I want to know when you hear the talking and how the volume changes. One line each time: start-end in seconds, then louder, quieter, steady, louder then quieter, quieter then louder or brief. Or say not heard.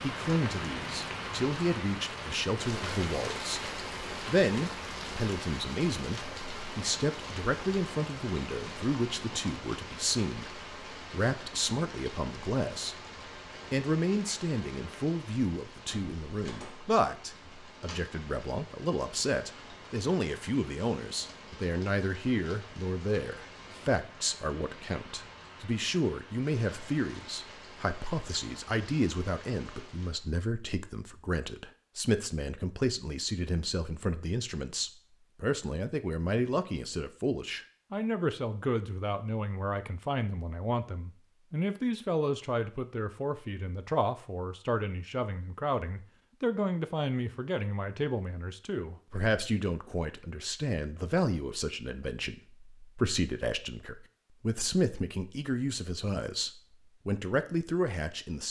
0.0-13.1 steady
13.7-58.4 steady.